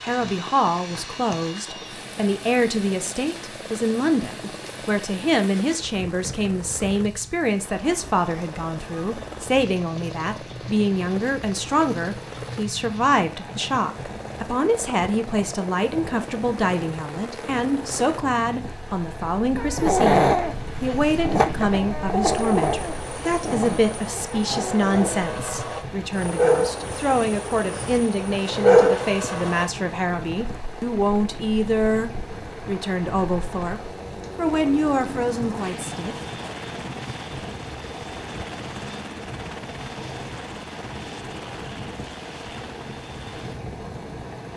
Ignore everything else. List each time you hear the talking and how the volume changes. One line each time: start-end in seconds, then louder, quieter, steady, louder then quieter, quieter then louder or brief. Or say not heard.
0.0-36.1 steady.